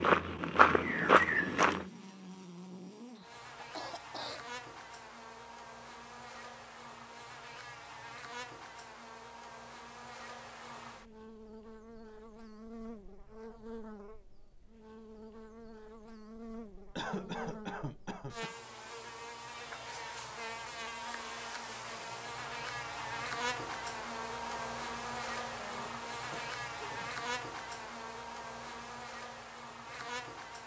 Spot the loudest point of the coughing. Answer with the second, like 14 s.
17 s.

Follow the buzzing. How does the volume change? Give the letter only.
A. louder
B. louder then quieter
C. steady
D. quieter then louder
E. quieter
A.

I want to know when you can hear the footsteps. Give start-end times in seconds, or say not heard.
0.0-1.9.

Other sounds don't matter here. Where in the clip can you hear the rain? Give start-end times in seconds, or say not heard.
not heard.